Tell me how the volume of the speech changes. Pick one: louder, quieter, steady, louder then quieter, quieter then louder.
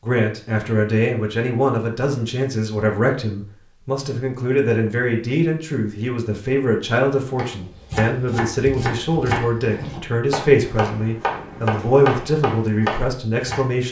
steady.